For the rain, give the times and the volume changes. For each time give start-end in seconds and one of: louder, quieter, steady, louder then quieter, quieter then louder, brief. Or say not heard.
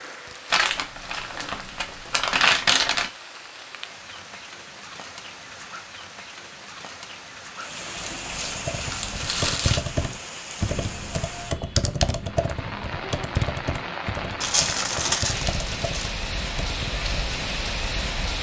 0.0-18.3 louder.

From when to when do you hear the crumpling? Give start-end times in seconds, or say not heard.
0.5-3.1, 8.0-9.8, 14.4-16.1.